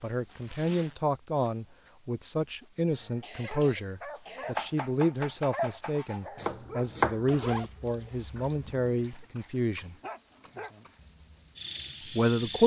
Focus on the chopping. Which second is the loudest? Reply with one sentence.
The volume of the chopping peaks at 7 seconds.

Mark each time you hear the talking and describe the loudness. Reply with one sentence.
You can hear the talking from 0.0 to 9.9 s, at a steady volume; and briefly from 12.1 to 12.6 s.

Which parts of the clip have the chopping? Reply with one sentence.
You can hear the chopping from 4.5 to 7.3 s.